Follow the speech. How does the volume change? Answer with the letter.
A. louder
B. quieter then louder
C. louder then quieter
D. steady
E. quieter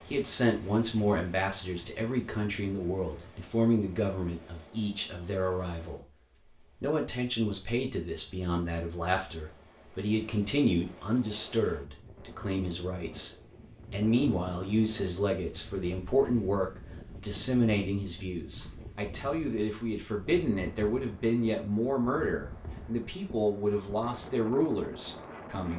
D.